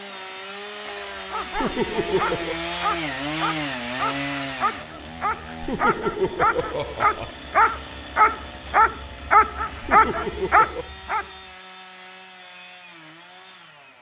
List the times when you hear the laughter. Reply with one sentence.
The laughter can be heard from 1.6 to 2.5 s, from 5.6 to 7.3 s and from 9.8 to 10.9 s.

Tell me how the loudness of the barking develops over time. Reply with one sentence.
The loudness of the barking goes up.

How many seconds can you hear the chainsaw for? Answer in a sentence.
The chainsaw can be heard for 14 seconds in total.